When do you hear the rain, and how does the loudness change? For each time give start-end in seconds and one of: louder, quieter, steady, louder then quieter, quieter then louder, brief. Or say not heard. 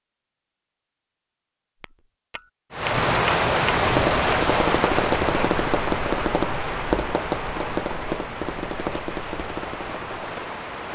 2.7-10.9 quieter.